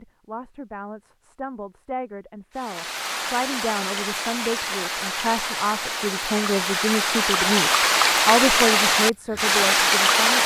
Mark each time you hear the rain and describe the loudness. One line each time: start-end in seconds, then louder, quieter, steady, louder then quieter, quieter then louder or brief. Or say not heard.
2.5-10.4 louder.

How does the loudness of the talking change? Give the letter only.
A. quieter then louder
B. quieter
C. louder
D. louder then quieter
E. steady
C.